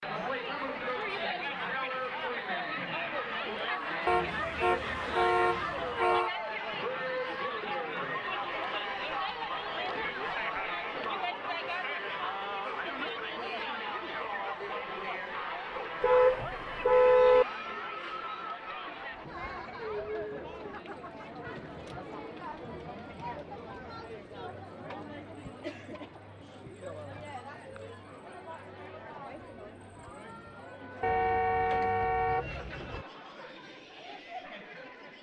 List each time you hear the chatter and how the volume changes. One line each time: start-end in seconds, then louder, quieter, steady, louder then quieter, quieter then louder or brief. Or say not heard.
0.0-35.1 quieter.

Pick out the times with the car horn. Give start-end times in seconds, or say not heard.
4.0-6.3, 16.0-17.4, 31.0-33.0.